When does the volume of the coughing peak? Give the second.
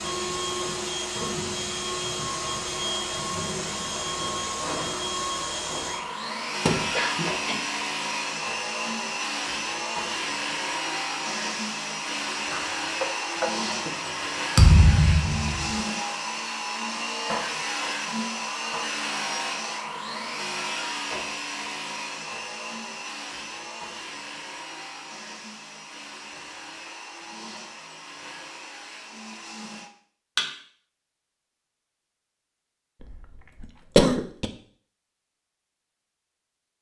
34 s.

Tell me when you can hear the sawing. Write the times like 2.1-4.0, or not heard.
not heard.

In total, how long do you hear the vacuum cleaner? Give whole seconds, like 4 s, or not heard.
30 s.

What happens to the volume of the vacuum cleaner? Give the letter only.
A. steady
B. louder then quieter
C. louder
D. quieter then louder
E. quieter
E.